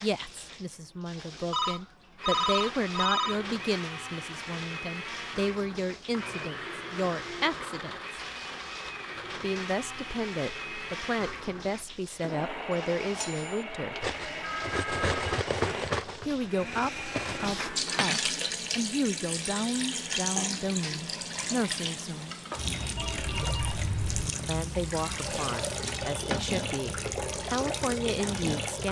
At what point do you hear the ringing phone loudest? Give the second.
2 s.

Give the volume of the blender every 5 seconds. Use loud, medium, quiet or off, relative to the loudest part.
loud, loud, loud, loud, off, off.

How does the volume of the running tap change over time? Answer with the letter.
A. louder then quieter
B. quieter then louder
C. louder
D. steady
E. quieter
C.